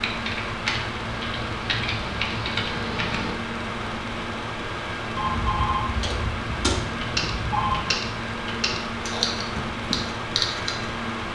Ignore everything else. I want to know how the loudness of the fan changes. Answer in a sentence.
The loudness of the fan stays about the same.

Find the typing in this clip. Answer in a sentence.
The typing can be heard from 0.0 to 3.4 s and from 6.0 to 10.9 s.